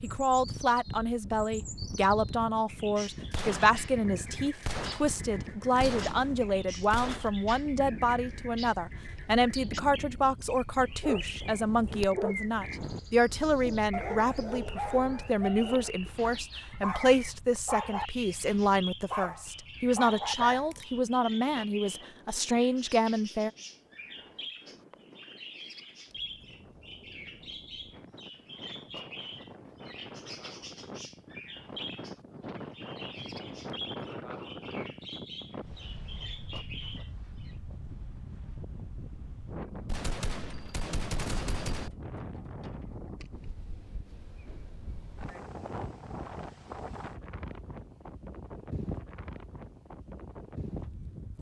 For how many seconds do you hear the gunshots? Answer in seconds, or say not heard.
6 s.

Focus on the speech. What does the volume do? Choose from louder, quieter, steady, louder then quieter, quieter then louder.
steady.